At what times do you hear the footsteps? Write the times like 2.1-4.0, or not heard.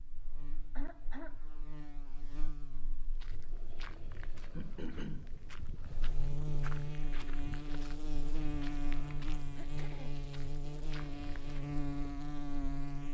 3.1-11.8.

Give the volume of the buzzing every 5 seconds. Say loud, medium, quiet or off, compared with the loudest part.
quiet, loud, loud.